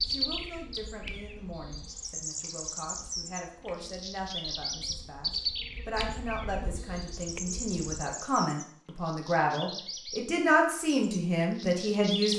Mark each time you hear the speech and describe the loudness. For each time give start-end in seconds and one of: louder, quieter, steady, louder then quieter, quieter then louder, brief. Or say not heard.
0.0-12.3 louder.